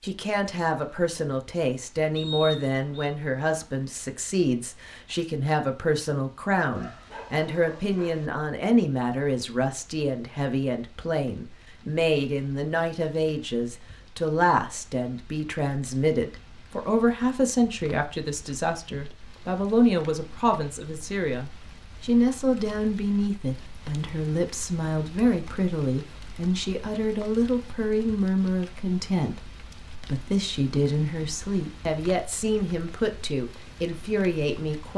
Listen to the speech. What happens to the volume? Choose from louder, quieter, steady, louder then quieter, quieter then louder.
steady.